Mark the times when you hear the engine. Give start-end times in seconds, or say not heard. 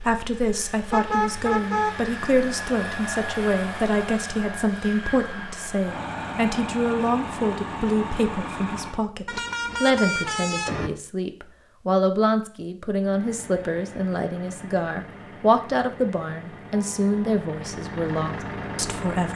0.0-9.1, 12.9-19.3.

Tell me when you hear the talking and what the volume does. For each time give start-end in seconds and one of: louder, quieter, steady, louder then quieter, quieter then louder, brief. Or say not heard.
0.0-19.3 steady.